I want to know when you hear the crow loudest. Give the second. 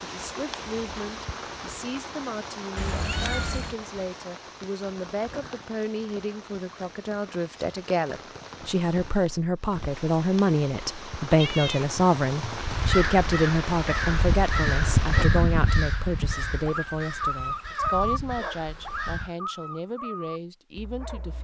15 s.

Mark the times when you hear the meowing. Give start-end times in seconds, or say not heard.
2.8-3.8, 11.3-12.9.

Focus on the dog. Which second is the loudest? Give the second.
18 s.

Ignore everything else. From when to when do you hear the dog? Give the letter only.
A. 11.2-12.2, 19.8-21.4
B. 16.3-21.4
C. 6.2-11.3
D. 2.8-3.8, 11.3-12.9
B.